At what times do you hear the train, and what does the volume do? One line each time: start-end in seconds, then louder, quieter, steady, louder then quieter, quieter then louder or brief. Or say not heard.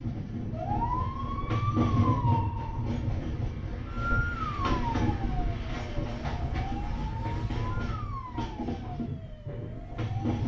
0.0-10.4 quieter.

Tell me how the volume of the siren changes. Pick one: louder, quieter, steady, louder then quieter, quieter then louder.
quieter.